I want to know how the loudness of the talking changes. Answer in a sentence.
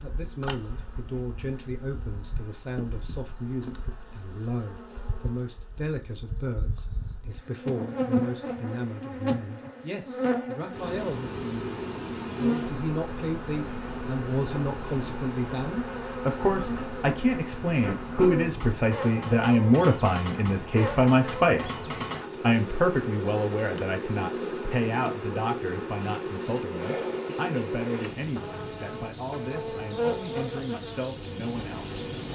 The volume of the talking goes up, then down.